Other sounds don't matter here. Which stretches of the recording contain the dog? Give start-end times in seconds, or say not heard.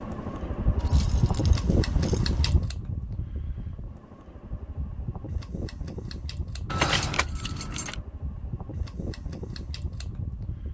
not heard.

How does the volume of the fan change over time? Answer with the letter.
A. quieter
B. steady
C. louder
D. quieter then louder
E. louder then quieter
A.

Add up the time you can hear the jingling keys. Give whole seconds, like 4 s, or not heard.
3 s.